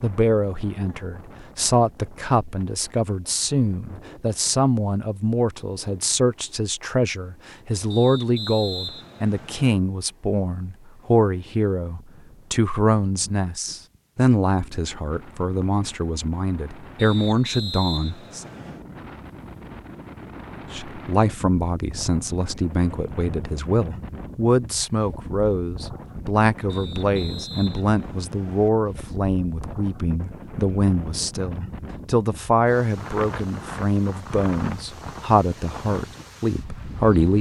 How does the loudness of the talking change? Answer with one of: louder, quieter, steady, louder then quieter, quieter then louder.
steady.